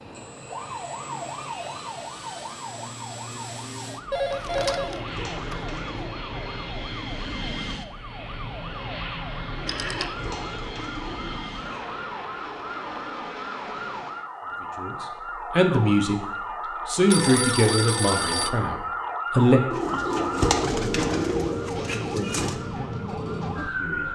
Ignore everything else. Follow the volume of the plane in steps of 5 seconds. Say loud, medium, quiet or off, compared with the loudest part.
medium, loud, loud, off, off.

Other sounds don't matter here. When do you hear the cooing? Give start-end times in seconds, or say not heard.
4.5-6.1, 9.5-12.0, 19.7-22.6.